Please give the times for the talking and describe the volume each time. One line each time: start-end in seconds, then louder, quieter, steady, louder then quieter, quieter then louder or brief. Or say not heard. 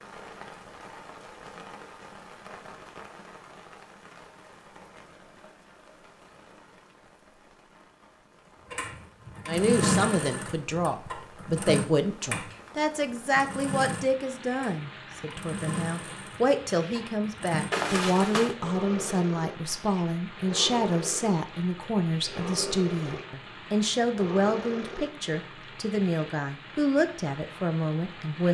9.4-28.4 steady.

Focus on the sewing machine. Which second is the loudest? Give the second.
10 s.